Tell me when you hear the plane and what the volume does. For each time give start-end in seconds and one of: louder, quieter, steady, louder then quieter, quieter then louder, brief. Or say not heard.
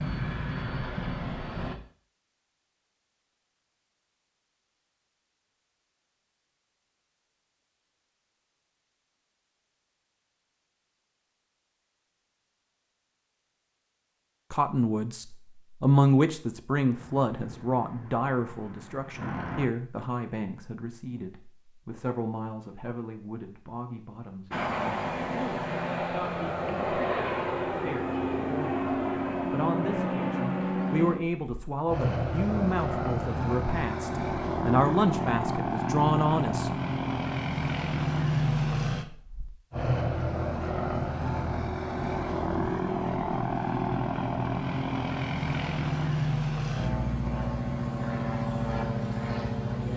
0.0-1.8 brief
16.9-19.7 brief
24.5-49.9 steady.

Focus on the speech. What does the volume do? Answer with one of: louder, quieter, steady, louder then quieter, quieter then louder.
quieter then louder.